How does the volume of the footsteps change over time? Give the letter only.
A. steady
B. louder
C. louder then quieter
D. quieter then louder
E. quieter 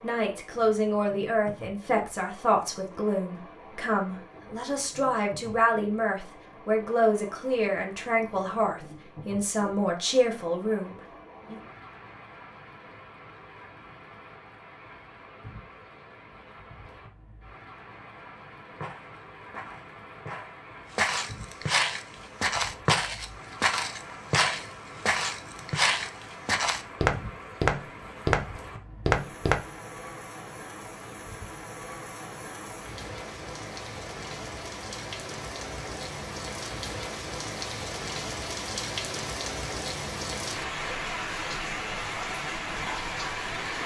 B.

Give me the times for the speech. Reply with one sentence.
You can hear the speech from 0.0 to 11.6 s.